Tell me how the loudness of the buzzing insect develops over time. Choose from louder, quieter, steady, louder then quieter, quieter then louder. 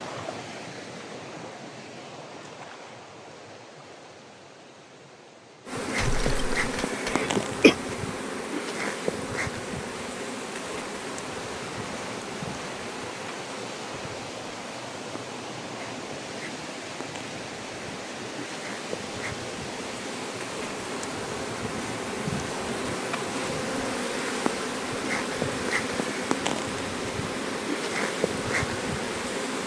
quieter then louder.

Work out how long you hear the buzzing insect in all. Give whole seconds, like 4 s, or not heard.
24 s.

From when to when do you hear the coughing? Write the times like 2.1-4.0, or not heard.
6.0-7.8.